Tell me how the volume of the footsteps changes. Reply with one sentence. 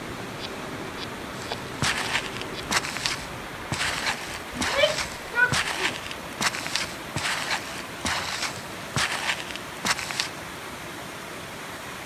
The loudness of the footsteps stays about the same.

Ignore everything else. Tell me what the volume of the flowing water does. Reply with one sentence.
The volume of the flowing water stays about the same.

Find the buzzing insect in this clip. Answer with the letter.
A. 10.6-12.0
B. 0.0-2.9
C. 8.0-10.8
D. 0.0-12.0
B.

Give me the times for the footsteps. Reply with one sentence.
You can hear the footsteps from 1.4 to 10.3 s.